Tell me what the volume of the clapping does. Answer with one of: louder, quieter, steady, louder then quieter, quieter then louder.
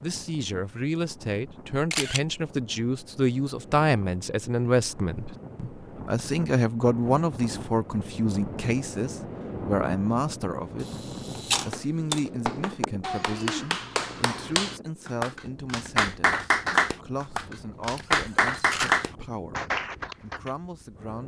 louder.